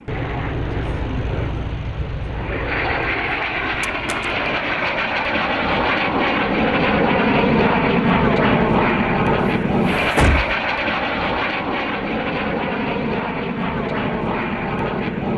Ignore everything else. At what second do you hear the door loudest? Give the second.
10 s.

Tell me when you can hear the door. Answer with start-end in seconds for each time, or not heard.
3.7-4.2, 9.3-10.6.